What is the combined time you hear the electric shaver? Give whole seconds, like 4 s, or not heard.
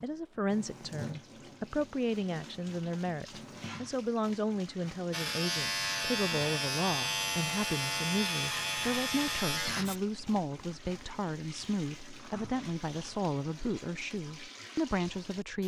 5 s.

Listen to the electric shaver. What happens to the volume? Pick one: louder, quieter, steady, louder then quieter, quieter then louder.
steady.